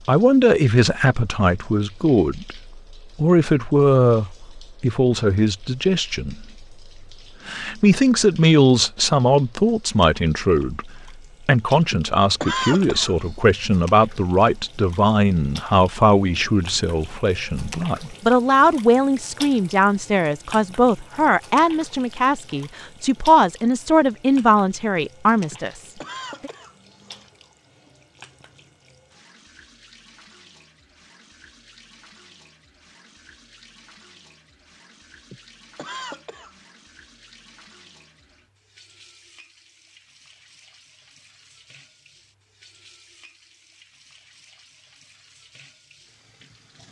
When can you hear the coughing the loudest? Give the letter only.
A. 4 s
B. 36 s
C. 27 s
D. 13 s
D.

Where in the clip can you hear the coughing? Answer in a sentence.
You can hear the coughing from 11.9 to 13.3 s, from 25.5 to 27.3 s and from 35.3 to 36.6 s.